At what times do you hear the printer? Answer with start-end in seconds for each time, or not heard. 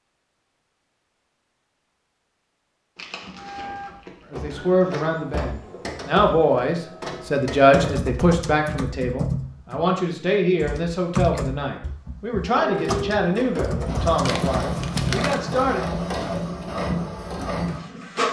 3.4-8.0, 12.4-18.2.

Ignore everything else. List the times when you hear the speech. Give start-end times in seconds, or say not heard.
4.3-15.8.